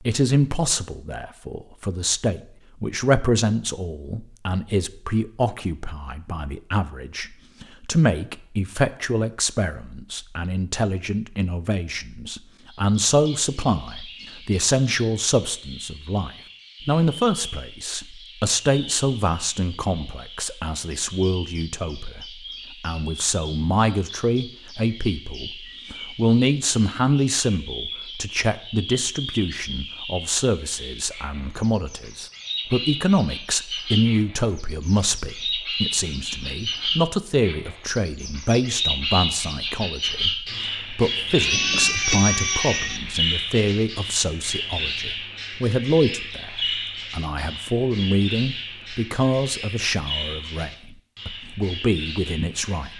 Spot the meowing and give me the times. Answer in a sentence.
You can hear the meowing from 41.4 to 43.0 s.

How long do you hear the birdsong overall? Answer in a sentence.
The birdsong can be heard for 40 seconds in total.